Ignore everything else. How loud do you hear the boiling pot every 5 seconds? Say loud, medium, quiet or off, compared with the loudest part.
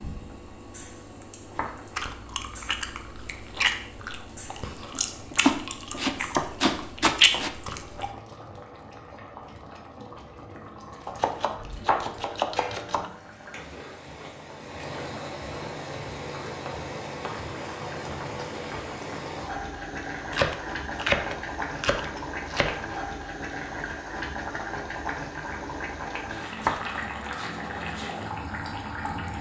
medium, medium, medium, loud, loud, loud.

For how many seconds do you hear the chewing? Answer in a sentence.
The chewing can be heard for 6 seconds in total.